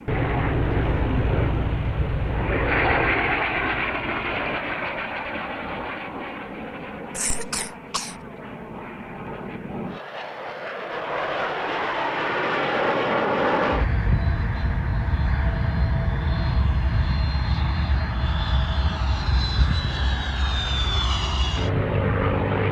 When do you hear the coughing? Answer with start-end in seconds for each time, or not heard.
7.1-8.2.